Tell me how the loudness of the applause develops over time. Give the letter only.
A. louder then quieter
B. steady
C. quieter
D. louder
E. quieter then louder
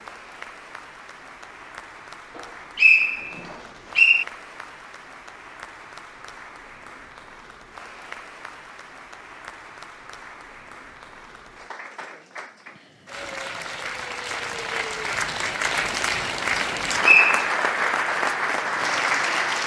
D.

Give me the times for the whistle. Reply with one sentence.
You can hear the whistle from 2.4 to 4.2 s and from 17.0 to 17.5 s.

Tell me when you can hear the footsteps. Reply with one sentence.
The footsteps can't be heard in this clip.